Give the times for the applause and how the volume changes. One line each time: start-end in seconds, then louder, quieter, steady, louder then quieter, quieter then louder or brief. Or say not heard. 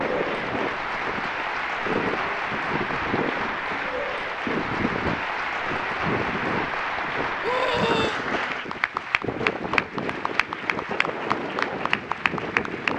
0.0-12.9 steady.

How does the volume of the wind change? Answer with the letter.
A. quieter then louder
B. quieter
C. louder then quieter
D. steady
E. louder
D.